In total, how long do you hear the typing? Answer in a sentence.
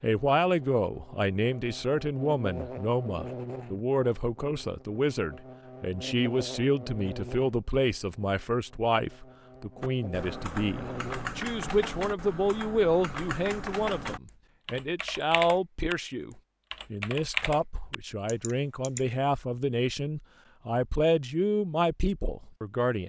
The typing can be heard for 9 seconds in total.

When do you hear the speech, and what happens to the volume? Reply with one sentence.
The speech can be heard from 0.0 to 23.0 s, at a steady volume.